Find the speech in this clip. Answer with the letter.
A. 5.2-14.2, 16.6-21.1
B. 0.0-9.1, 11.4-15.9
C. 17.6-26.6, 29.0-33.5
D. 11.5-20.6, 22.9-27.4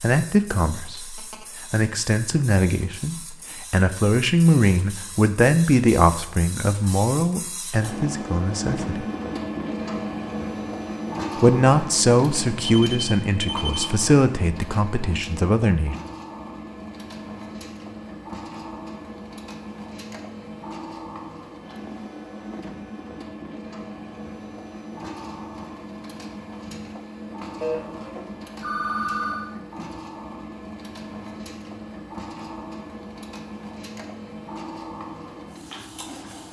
B.